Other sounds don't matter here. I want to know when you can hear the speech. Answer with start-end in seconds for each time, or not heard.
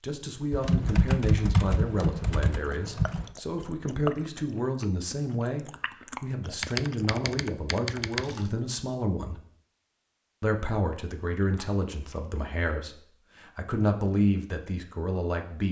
0.0-9.4, 10.4-15.6.